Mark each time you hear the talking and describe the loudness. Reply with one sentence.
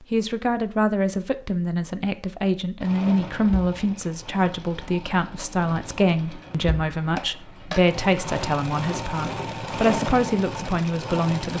You can hear the talking from 0.0 to 11.5 s, at a steady volume.